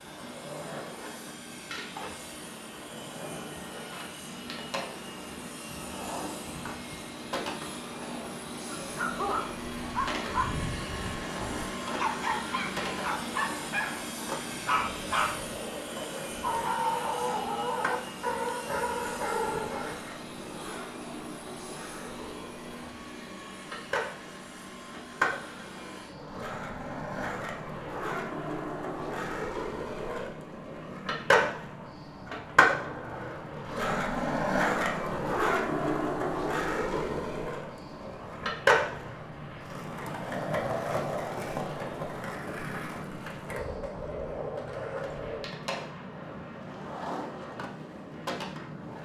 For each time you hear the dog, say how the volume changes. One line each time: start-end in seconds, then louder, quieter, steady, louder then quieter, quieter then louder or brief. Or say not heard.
8.7-19.9 steady.